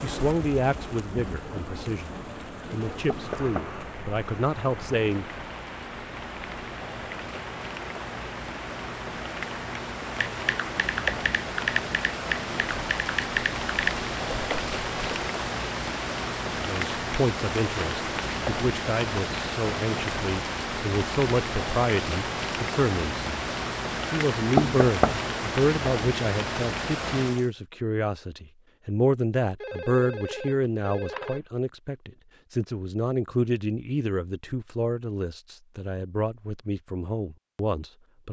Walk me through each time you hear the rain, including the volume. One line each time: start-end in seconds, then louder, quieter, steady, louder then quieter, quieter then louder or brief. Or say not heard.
0.0-27.5 louder.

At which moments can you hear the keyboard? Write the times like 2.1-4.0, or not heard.
10.2-15.3.